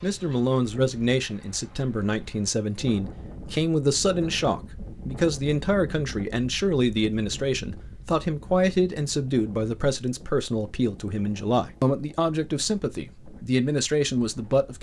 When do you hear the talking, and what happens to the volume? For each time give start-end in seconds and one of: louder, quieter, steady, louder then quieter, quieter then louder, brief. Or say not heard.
0.0-14.7 steady.